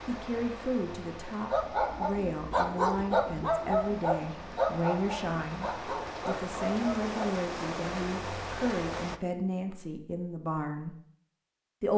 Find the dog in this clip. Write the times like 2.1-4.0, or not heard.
1.5-7.1.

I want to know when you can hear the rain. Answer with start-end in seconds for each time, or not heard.
0.0-9.2.